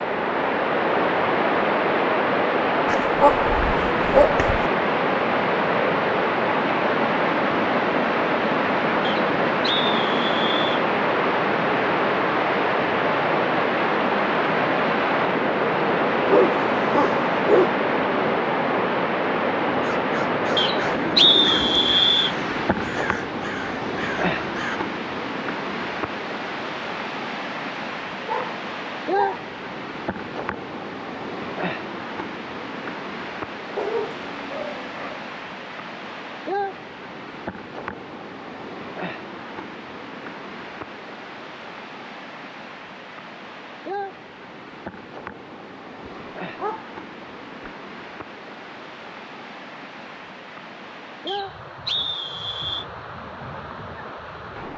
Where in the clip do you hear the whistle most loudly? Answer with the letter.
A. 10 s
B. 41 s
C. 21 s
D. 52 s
C.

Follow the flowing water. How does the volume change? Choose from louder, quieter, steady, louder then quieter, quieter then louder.
quieter.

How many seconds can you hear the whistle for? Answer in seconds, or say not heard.
5 s.